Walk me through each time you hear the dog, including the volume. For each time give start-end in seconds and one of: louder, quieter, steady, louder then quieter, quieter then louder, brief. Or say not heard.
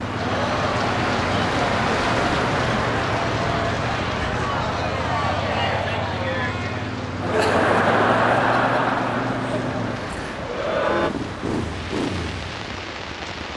not heard.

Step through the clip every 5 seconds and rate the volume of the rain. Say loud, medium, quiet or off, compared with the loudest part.
loud, medium, medium.